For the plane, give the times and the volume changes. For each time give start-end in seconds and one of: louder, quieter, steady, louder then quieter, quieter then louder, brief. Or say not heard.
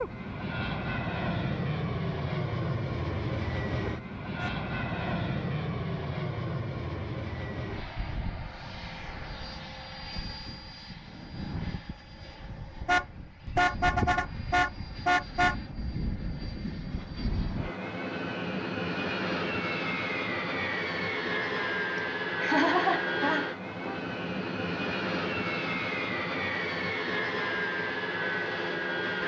0.0-29.2 quieter then louder.